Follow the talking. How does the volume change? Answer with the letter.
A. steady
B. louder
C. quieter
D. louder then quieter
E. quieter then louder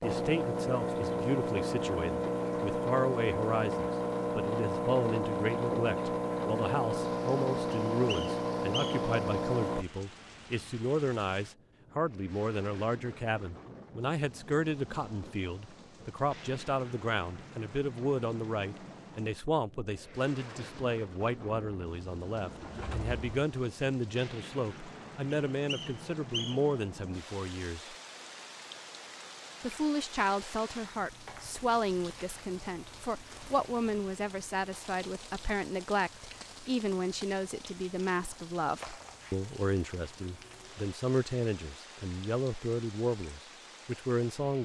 A.